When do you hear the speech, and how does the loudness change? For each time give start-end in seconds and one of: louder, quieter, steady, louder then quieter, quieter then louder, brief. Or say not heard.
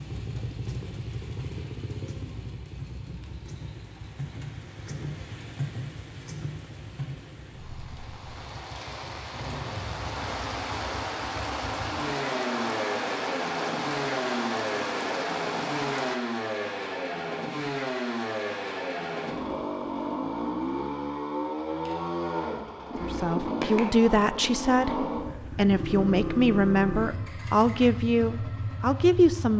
23.0-29.5 steady.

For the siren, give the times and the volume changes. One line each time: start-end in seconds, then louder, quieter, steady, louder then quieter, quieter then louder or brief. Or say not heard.
not heard.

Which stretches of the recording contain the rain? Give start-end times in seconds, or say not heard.
0.0-16.2.